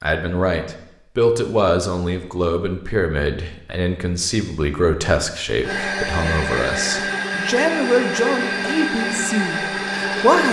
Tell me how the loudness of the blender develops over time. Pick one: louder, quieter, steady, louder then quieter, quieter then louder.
steady.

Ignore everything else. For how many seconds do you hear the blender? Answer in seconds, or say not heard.
5 s.